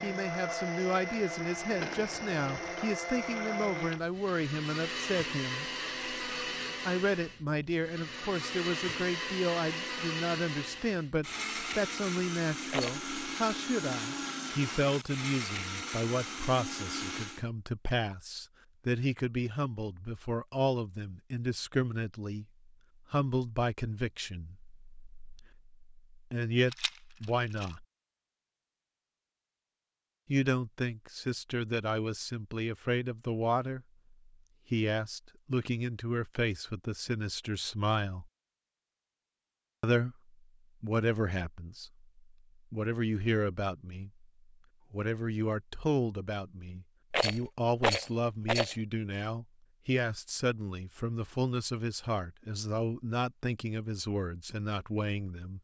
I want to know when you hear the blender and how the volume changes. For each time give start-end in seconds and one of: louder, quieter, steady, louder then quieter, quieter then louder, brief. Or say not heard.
0.0-17.4 steady.